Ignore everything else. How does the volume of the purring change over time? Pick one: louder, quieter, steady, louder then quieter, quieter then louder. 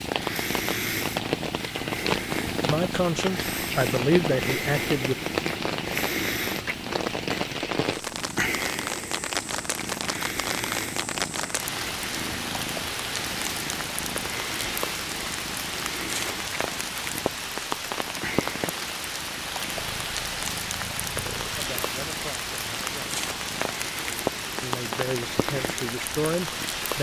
quieter.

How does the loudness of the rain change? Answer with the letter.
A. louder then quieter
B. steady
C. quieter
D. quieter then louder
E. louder
B.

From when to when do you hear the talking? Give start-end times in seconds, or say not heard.
2.6-5.2, 21.6-23.1, 24.6-26.9.